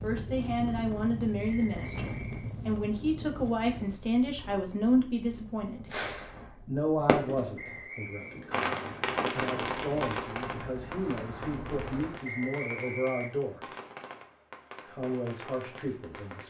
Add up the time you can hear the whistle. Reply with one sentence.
The whistle can be heard for 3 seconds in total.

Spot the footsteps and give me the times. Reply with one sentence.
You can't hear the footsteps here.